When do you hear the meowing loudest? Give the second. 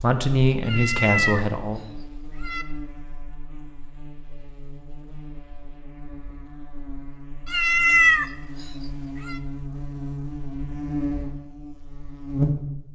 8 s.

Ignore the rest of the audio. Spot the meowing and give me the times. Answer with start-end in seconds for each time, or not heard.
0.7-2.6, 7.5-9.4.